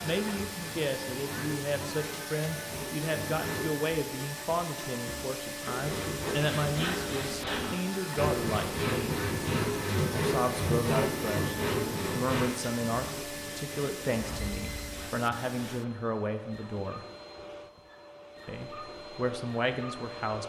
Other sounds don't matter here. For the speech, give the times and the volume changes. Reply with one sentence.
The speech can be heard from 0.0 to 9.2 s, at a steady volume; from 10.2 to 17.1 s, at a steady volume; and briefly from 18.4 to 20.4 s.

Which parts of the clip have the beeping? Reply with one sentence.
You can hear the beeping from 14.1 to 15.1 s.